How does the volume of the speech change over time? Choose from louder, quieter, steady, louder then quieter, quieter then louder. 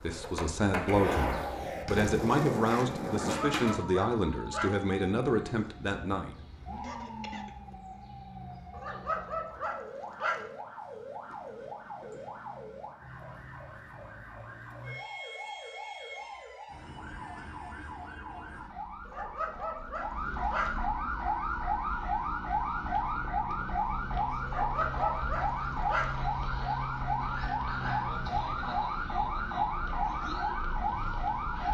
steady.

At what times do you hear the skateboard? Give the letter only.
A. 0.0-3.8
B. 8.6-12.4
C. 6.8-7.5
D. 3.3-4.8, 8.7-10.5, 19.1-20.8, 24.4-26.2
A.